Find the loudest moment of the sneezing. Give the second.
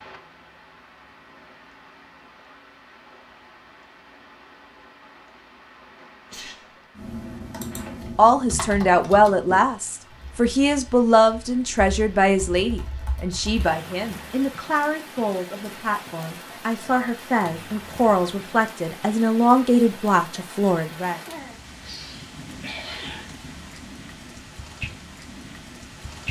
23 s.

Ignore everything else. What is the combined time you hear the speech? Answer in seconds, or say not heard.
13 s.